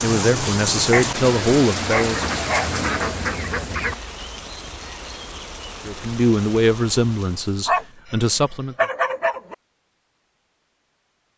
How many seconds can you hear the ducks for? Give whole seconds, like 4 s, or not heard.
2 s.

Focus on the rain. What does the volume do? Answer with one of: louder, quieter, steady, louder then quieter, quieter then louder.
quieter.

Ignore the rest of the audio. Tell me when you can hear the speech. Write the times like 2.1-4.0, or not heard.
0.0-2.2, 5.8-8.8.